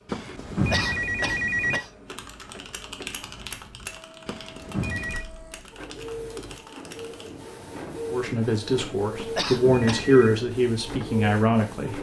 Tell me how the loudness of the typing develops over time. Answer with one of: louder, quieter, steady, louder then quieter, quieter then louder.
quieter.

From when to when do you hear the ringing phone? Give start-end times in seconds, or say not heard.
0.1-1.9, 4.2-5.2, 9.2-10.3.